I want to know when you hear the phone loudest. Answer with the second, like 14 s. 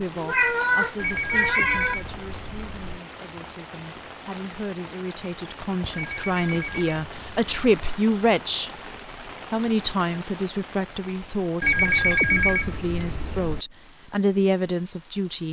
12 s.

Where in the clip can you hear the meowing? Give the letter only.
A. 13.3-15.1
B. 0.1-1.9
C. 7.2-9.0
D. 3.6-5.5
B.